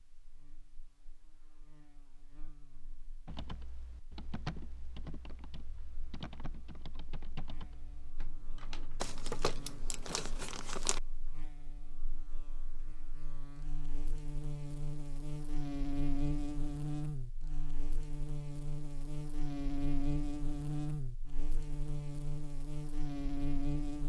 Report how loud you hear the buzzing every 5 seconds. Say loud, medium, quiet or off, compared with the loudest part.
quiet, quiet, medium, loud, loud.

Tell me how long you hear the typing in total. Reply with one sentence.
You can hear the typing for 6 seconds altogether.